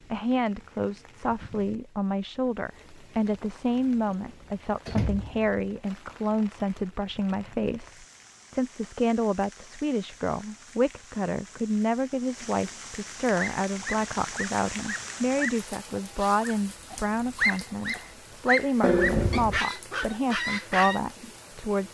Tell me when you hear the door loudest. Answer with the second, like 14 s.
19 s.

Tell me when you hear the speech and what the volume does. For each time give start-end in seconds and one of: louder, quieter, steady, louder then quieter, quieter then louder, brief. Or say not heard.
0.1-21.8 steady.